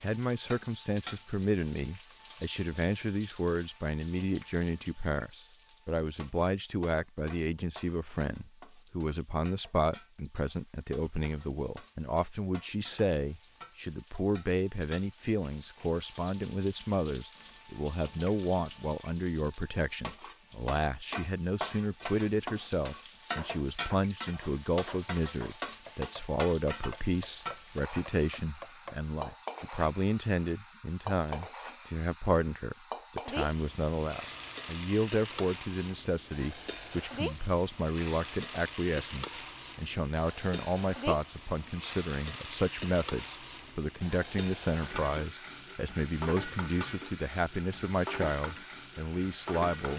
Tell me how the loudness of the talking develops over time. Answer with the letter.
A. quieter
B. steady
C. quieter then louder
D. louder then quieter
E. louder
B.